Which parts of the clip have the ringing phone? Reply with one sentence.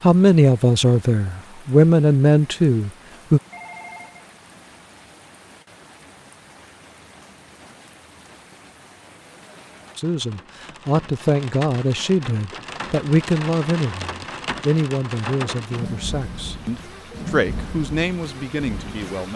You can hear the ringing phone from 3.5 to 4.2 s.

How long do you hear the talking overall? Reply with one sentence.
The talking can be heard for 13 seconds in total.